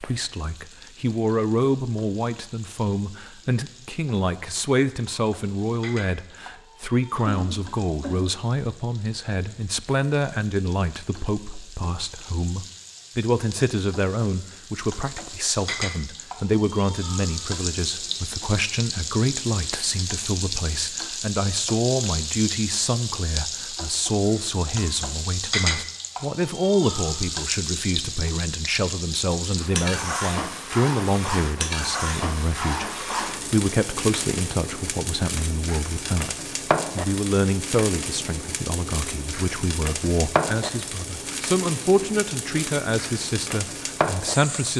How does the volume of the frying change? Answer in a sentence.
The loudness of the frying goes up.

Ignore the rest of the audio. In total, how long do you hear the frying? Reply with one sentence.
The frying can be heard for 45 seconds in total.